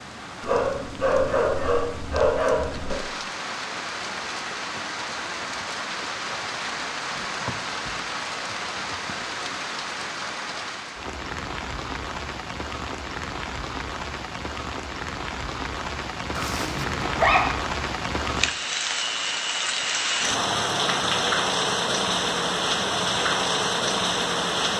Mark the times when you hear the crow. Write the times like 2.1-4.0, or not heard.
not heard.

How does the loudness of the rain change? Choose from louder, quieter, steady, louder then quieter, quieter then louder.
louder.